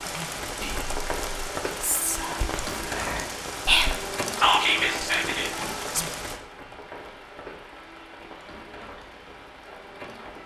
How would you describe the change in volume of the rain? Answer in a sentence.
The volume of the rain goes down.